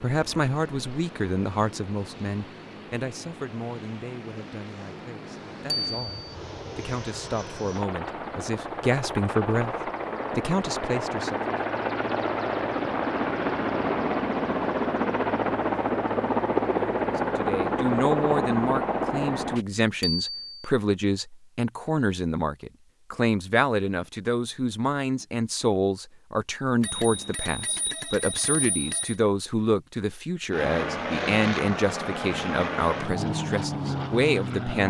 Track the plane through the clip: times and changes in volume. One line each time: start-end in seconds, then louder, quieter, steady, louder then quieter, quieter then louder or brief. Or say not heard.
0.0-19.6 louder
30.5-34.8 steady.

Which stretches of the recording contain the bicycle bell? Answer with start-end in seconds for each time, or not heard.
5.7-6.3, 20.0-20.7, 26.8-29.1.